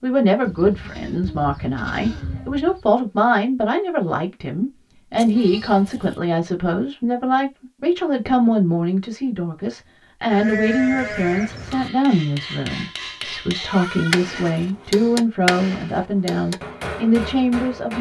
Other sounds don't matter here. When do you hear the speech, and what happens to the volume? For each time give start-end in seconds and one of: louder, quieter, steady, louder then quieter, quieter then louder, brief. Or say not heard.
0.0-17.9 steady.